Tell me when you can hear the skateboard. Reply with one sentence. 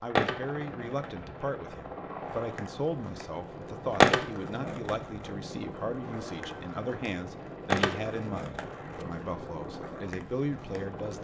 You can hear the skateboard from 0.1 to 11.1 s.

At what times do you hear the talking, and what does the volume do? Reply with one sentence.
You can hear the talking from 0.0 to 11.1 s, at a steady volume.